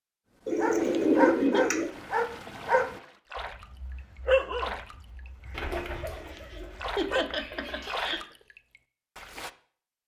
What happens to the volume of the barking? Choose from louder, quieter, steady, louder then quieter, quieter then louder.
quieter.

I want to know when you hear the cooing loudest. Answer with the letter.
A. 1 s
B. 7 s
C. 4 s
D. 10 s
A.